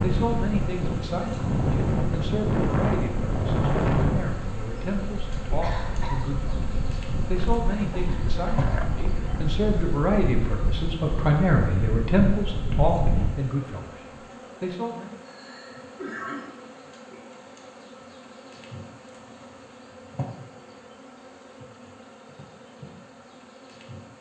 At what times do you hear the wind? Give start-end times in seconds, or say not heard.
0.0-13.3.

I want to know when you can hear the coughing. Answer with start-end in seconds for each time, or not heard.
5.4-6.2, 15.2-16.4.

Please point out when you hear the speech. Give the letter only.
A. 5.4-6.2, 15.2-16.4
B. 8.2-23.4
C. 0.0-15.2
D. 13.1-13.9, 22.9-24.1
C.